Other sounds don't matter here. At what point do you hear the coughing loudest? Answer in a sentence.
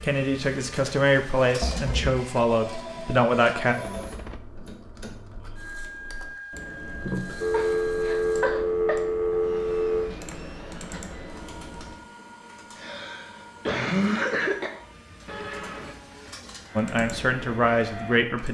The loudest moment of the coughing is at 14 seconds.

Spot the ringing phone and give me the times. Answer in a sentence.
You can hear the ringing phone from 2.6 to 4.4 s, from 7.4 to 10.2 s and from 15.2 to 15.9 s.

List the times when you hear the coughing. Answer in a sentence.
The coughing can be heard from 1.6 to 2.2 s, from 7.5 to 9.3 s and from 12.8 to 14.7 s.